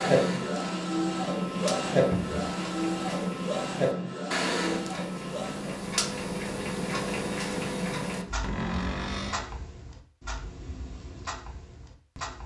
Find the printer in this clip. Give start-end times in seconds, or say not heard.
0.0-5.8.